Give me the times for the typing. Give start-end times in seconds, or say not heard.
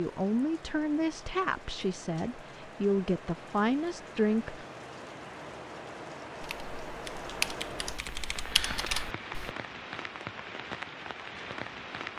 6.4-9.5.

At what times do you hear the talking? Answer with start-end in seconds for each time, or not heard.
0.0-4.7.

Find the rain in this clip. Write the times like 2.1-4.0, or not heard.
0.0-12.1.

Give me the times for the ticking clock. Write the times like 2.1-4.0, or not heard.
not heard.